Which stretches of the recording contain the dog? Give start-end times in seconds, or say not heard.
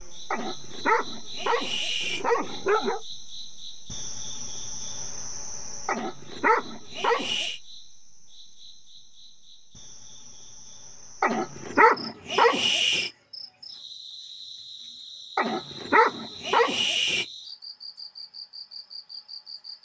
0.3-3.0, 5.8-7.6, 11.2-13.1, 15.3-17.2.